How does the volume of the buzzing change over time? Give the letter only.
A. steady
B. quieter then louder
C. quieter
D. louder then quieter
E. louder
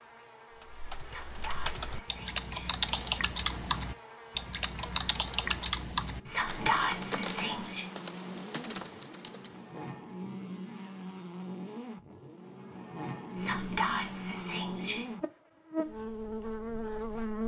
E.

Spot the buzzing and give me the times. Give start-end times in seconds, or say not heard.
0.0-17.4.